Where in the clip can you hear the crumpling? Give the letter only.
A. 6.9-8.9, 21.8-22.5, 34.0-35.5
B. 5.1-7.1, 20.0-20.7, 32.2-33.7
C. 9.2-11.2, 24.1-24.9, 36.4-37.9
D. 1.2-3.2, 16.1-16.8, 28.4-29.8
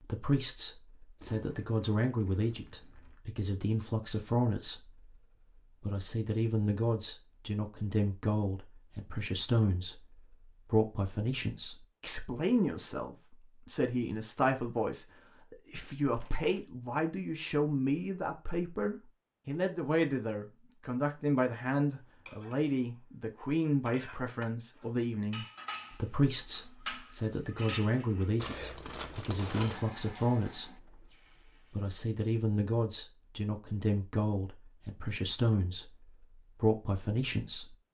D.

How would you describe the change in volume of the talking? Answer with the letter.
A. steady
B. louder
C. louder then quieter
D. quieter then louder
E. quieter
A.